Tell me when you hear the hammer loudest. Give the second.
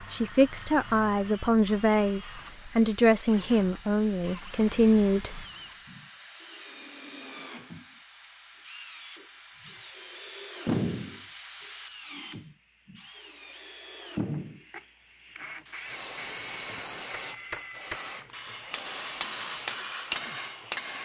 20 s.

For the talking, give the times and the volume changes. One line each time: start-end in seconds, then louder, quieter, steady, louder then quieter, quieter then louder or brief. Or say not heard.
0.0-5.5 steady.